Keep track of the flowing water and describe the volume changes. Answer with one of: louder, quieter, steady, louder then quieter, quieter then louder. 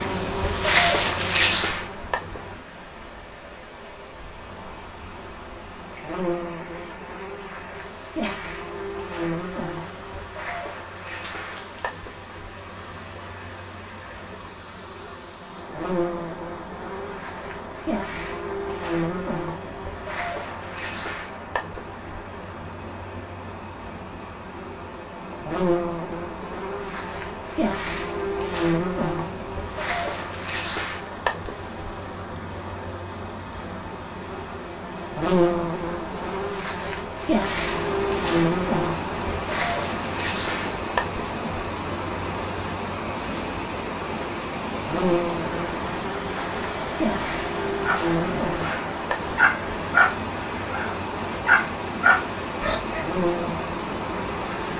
louder.